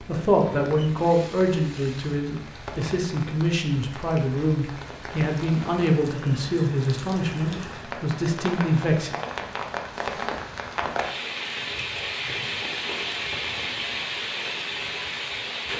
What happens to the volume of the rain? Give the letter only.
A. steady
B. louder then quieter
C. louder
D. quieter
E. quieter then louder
C.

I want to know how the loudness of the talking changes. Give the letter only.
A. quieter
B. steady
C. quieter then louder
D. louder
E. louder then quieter
B.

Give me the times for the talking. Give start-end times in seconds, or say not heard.
0.1-9.2.